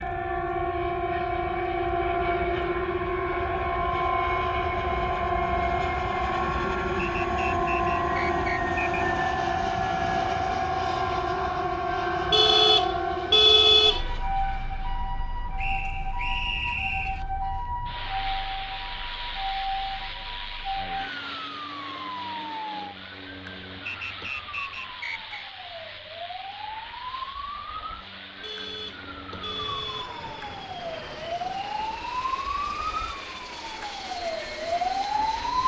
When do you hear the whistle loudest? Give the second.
17 s.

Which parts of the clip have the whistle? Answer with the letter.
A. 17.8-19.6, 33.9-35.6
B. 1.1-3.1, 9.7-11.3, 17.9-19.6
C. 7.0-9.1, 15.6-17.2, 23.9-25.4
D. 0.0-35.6
C.